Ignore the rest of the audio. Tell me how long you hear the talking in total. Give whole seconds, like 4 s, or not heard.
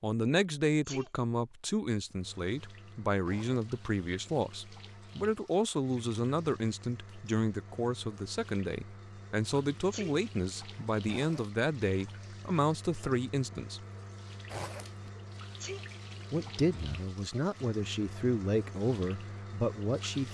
18 s.